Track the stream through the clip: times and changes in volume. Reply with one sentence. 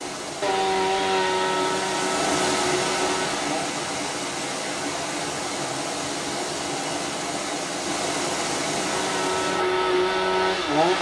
You can hear the stream from 0.0 to 10.9 s, at a steady volume.